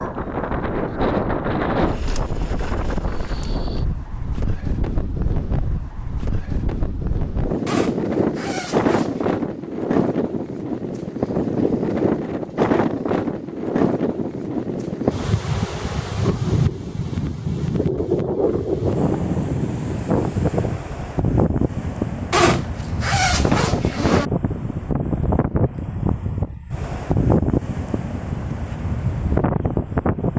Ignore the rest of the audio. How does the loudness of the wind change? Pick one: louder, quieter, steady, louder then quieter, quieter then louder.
steady.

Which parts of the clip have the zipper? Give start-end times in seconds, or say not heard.
7.7-9.2, 22.3-24.2.